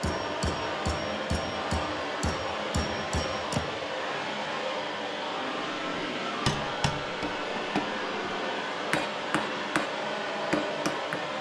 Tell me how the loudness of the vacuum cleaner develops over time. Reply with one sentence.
The loudness of the vacuum cleaner stays about the same.